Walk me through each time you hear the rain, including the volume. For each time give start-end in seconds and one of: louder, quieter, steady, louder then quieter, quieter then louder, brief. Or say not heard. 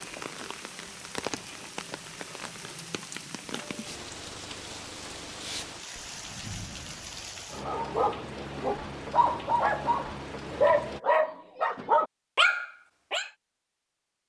0.0-11.0 steady.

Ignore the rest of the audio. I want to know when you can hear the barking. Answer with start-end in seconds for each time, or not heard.
7.5-13.3.